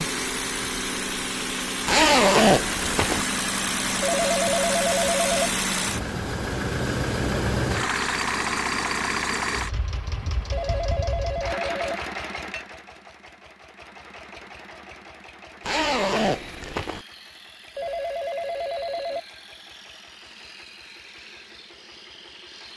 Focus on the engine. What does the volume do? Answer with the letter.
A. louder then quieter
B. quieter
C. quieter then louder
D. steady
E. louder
B.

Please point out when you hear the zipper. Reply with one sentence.
The zipper can be heard from 1.9 to 3.2 s and from 15.6 to 17.1 s.